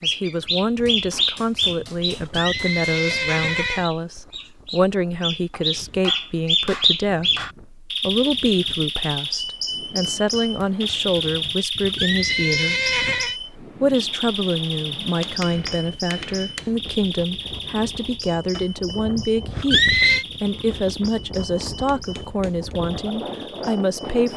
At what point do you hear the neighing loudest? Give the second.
20 s.